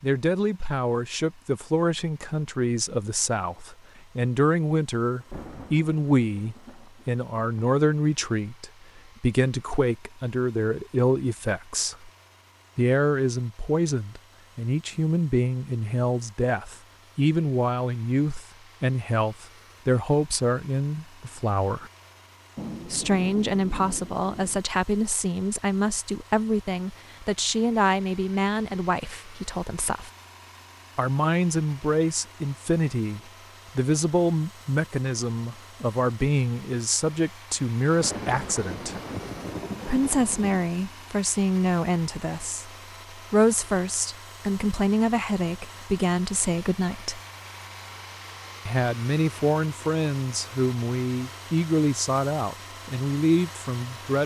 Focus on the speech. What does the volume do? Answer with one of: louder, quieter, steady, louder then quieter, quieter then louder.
steady.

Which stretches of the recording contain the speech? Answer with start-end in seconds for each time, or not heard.
0.0-12.1, 12.8-21.9, 22.9-30.1, 30.9-39.0, 39.9-47.2, 48.6-54.2.